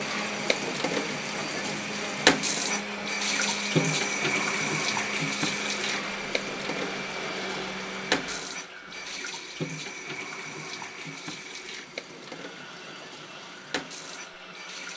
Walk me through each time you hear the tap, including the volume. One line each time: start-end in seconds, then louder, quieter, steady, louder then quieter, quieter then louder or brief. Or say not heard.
0.0-14.9 quieter.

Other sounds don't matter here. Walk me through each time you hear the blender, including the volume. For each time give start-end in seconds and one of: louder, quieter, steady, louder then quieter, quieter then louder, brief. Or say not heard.
0.0-14.9 quieter.